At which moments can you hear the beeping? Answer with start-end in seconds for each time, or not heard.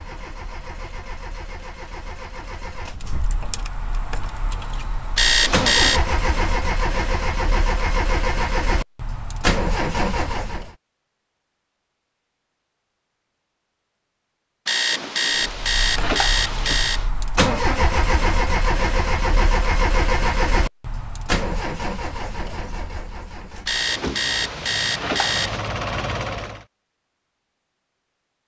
5.2-6.0, 14.7-17.1, 23.6-25.7.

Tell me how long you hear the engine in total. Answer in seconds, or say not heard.
22 s.